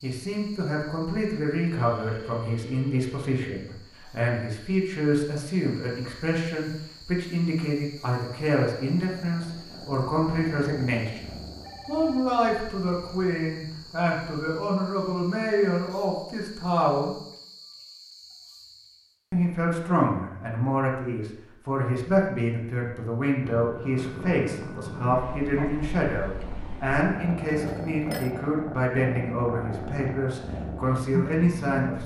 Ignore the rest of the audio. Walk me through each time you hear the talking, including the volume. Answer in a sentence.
The talking can be heard from 0.0 to 17.1 s, at a steady volume; and from 19.3 to 32.0 s, at a steady volume.